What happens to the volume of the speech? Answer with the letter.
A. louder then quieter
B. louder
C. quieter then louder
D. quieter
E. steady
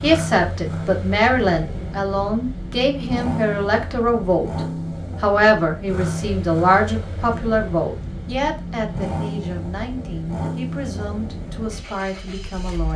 D.